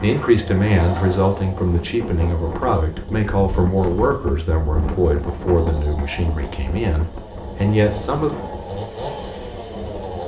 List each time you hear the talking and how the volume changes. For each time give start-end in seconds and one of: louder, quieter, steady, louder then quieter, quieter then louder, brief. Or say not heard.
0.0-8.3 steady.